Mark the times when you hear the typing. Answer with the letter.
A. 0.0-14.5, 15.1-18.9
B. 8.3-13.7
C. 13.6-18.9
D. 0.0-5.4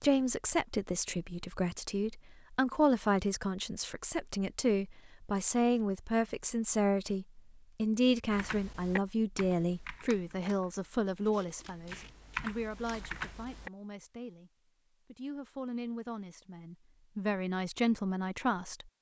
B.